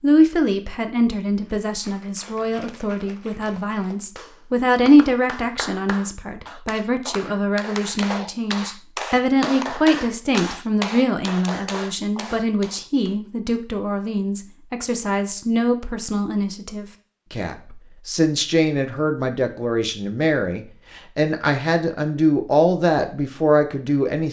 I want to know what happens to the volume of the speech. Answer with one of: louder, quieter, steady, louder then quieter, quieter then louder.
steady.